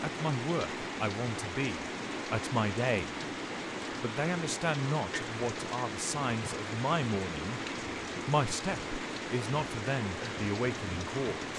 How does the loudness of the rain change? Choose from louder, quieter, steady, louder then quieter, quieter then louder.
steady.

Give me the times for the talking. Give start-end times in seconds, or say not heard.
0.0-3.2, 3.9-7.6, 8.2-11.4.